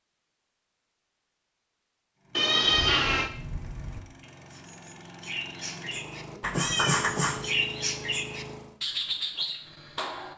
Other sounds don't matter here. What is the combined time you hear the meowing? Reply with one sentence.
The meowing can be heard for 2 seconds in total.